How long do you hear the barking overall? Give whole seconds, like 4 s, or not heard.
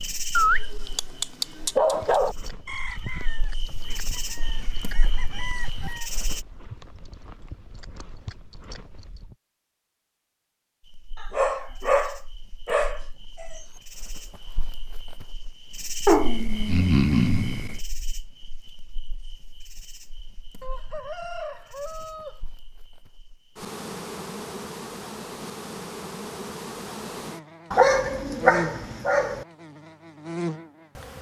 8 s.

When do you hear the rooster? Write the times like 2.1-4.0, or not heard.
2.6-6.1, 20.6-22.4.